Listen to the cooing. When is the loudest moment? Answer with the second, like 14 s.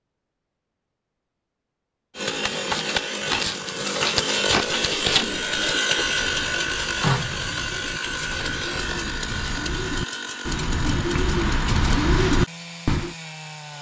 12 s.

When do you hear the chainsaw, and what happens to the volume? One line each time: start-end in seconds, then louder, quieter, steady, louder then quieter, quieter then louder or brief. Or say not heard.
2.1-13.7 quieter.